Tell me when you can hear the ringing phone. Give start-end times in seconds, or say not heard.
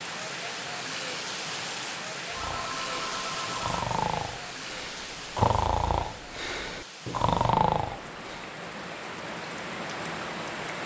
2.3-3.8.